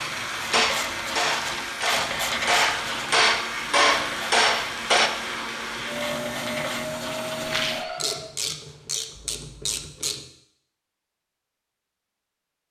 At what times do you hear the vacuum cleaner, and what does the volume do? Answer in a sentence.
You can hear the vacuum cleaner from 0.0 to 8.3 s, at a steady volume.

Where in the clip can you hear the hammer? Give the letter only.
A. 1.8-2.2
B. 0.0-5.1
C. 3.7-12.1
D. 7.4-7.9
B.